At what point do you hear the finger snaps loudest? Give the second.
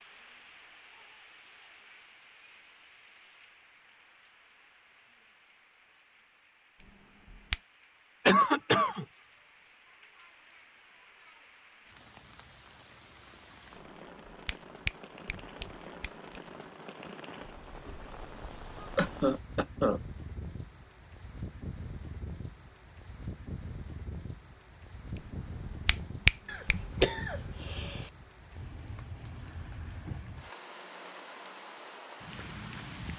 26 s.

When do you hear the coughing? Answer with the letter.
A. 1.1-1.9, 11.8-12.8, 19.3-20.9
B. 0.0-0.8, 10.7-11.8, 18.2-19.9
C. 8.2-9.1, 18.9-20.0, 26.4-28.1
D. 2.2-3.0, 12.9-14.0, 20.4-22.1
C.